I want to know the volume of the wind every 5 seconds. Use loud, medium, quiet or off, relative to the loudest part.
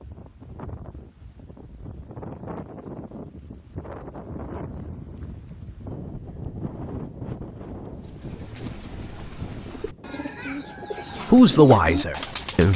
loud, loud, medium.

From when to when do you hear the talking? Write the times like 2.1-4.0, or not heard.
11.3-12.7.